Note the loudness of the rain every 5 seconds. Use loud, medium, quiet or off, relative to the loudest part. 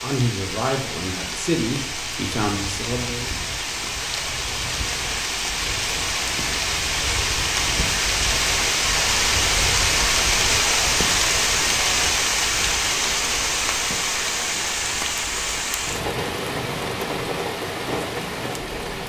medium, loud, loud, medium.